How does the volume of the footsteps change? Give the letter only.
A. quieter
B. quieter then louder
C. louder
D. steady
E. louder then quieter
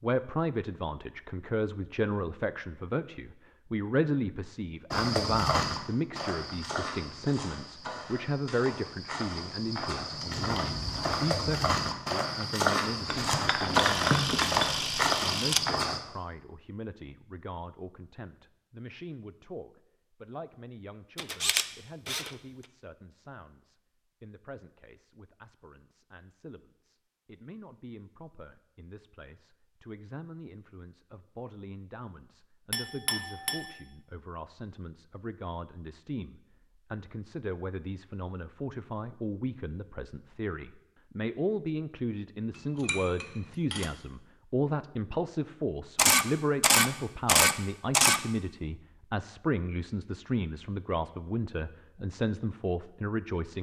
B.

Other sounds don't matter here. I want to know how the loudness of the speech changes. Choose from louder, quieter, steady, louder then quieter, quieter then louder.
quieter then louder.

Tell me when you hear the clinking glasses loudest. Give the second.
14 s.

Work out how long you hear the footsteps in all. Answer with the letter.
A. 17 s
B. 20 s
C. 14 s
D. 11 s
D.